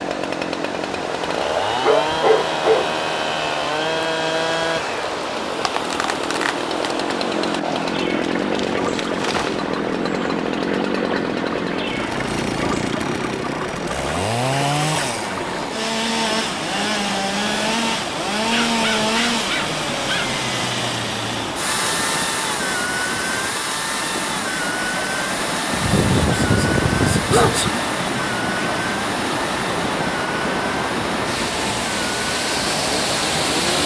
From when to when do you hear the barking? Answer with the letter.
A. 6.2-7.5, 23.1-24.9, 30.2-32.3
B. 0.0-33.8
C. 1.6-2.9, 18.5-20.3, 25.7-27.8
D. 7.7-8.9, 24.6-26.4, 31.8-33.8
C.